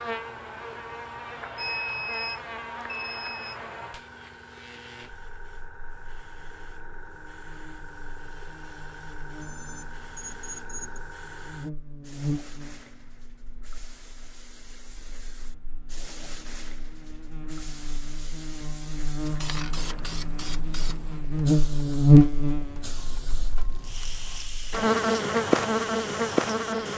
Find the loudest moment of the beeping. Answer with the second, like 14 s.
2 s.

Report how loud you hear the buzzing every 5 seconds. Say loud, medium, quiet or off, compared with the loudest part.
quiet, quiet, quiet, quiet, loud, loud.